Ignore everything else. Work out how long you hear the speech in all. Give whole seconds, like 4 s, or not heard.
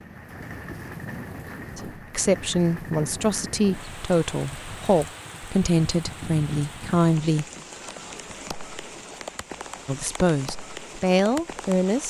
8 s.